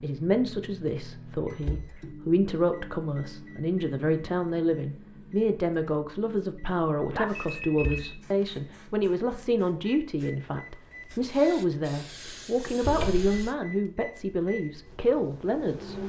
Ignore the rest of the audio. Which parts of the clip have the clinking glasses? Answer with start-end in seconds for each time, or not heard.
not heard.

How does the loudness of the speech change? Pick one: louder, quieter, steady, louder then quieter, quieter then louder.
steady.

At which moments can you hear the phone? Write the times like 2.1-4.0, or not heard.
7.1-8.2.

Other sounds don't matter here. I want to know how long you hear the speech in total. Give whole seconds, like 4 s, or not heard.
16 s.